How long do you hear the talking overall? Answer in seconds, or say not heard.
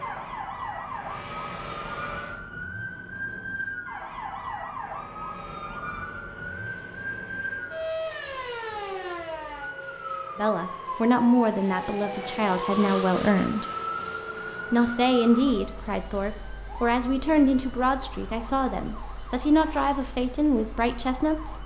10 s.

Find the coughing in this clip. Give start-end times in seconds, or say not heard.
not heard.